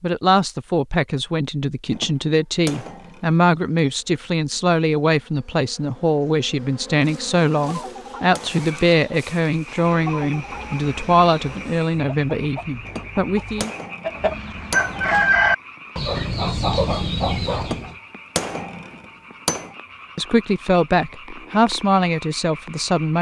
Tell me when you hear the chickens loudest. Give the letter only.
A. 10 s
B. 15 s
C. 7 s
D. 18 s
B.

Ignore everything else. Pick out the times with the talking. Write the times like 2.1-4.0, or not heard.
0.0-13.7, 20.1-23.1.